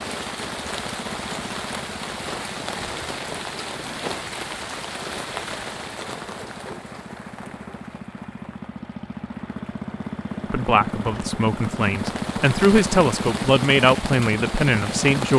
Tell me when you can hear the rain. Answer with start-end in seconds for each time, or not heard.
0.0-15.3.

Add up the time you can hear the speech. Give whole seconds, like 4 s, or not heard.
5 s.